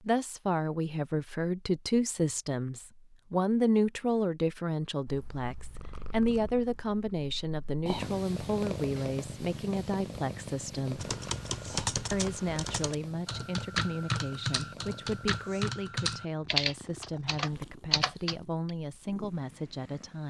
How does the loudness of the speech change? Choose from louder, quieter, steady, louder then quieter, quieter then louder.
quieter.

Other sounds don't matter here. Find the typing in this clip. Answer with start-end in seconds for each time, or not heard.
10.9-18.7.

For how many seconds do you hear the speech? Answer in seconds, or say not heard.
19 s.